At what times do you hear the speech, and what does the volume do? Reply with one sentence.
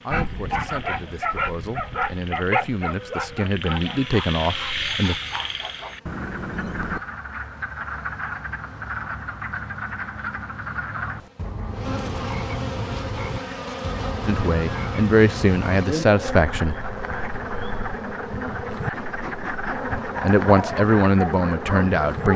The speech can be heard from 0.0 to 5.2 s, getting louder; briefly from 14.2 to 16.8 s; and briefly from 20.2 to 22.3 s.